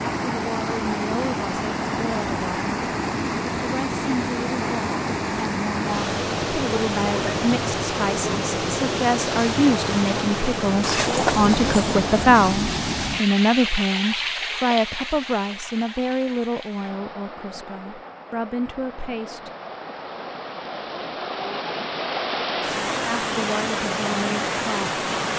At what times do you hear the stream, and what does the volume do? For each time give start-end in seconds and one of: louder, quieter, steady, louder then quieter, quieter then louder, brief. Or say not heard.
0.0-25.3 quieter then louder.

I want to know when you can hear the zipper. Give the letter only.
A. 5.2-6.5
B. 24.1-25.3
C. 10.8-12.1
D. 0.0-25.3
C.